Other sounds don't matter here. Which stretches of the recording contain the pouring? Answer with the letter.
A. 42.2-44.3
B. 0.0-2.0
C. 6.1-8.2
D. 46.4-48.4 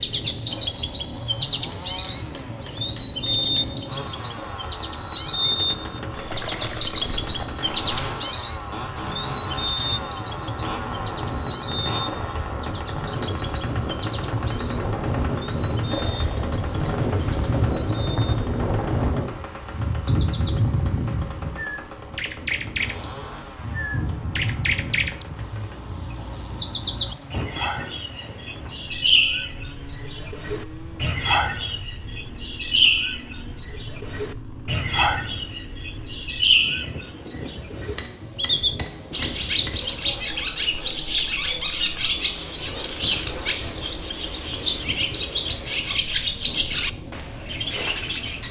C.